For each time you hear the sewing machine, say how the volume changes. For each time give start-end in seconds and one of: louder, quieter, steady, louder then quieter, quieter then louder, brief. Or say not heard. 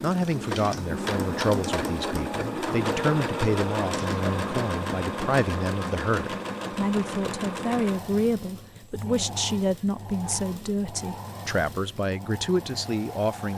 0.0-13.5 quieter.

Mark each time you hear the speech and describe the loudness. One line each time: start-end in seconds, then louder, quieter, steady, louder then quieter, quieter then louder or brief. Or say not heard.
0.0-13.5 steady.